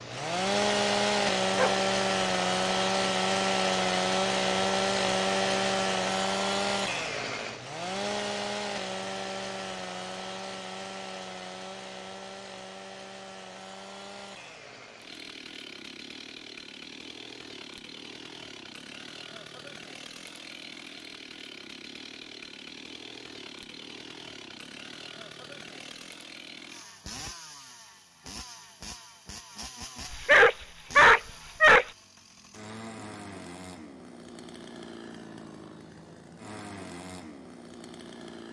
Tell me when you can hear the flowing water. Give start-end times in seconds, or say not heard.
not heard.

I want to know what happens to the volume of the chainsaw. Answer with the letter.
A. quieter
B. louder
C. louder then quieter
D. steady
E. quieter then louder
A.